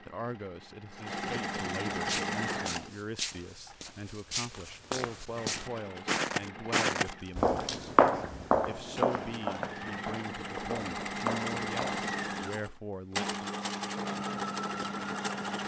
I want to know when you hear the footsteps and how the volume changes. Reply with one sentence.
The footsteps can be heard from 2.0 to 12.1 s, getting louder then quieter.